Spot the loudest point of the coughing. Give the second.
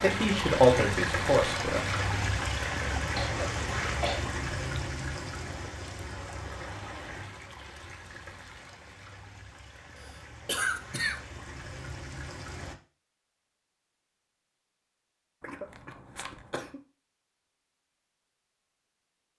11 s.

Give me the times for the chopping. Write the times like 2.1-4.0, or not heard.
not heard.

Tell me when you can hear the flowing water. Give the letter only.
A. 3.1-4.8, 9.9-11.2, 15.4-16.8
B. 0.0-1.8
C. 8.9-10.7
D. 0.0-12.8
D.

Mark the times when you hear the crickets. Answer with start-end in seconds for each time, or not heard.
not heard.